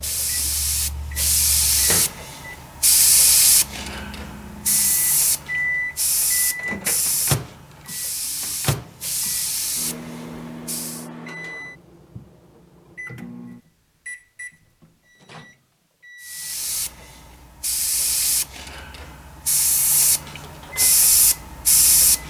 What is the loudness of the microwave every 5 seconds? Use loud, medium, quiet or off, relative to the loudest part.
medium, loud, medium, quiet, quiet.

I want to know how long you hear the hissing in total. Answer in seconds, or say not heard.
17 s.